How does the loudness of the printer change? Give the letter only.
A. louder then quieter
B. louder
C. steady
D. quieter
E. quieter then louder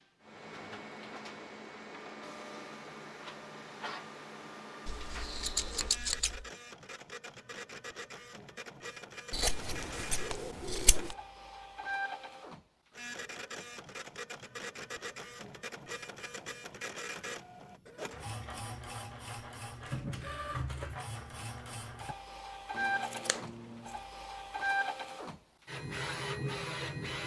B.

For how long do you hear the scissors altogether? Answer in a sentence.
You can hear the scissors for 5 seconds altogether.